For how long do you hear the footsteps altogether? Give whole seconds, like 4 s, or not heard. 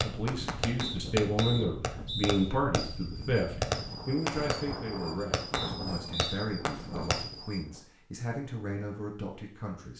not heard.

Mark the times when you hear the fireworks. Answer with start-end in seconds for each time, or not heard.
0.0-7.6.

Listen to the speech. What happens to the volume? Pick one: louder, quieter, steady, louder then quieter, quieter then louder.
quieter.